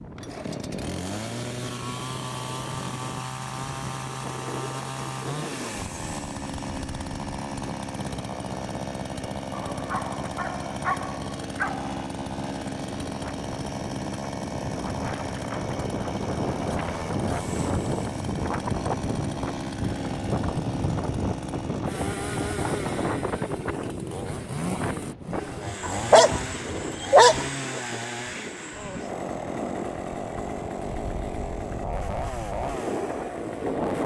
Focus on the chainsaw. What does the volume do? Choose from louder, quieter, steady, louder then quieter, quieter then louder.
steady.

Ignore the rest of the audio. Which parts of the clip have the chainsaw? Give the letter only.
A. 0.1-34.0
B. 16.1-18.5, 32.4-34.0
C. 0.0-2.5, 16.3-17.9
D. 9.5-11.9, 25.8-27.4
A.